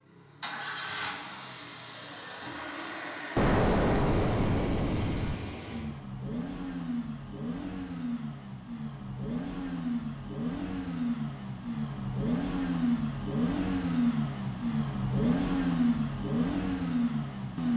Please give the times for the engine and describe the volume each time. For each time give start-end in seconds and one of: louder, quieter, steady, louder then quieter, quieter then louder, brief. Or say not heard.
0.1-17.7 louder.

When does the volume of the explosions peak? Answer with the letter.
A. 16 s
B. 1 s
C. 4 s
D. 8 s
C.